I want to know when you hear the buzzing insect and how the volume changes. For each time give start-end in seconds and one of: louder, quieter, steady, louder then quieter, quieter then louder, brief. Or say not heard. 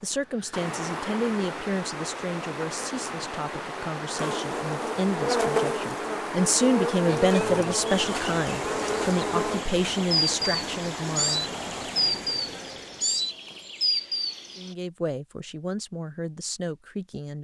4.2-14.8 steady.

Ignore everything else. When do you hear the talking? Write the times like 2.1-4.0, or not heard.
0.0-11.8, 14.6-17.3.